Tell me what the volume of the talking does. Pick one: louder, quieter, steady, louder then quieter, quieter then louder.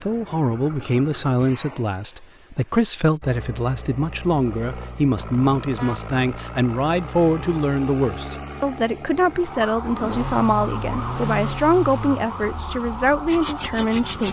steady.